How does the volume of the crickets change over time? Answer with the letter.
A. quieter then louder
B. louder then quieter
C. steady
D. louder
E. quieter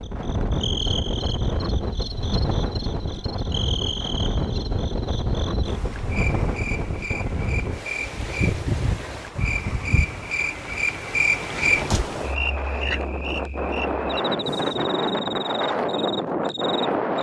B.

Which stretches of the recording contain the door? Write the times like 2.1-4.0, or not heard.
11.6-12.2.